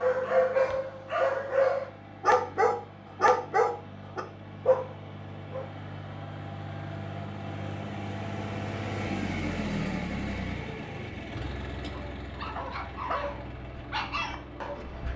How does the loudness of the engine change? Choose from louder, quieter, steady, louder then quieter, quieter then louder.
louder then quieter.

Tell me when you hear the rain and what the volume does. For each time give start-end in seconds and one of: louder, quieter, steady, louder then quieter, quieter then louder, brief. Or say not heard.
not heard.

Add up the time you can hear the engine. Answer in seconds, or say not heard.
15 s.